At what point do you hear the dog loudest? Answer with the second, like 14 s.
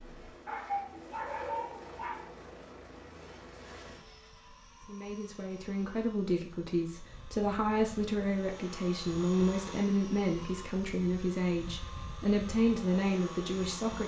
1 s.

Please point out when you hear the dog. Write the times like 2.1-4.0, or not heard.
0.5-2.3.